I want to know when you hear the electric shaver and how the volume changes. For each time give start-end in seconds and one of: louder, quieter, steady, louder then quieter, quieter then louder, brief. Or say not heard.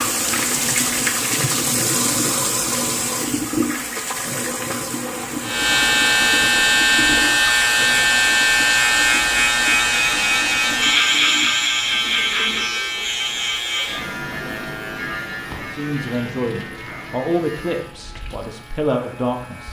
5.4-19.6 quieter.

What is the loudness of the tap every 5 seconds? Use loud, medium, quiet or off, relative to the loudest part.
loud, medium, quiet, quiet.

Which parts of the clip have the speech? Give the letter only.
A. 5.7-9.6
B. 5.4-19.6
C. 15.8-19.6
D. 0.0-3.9
C.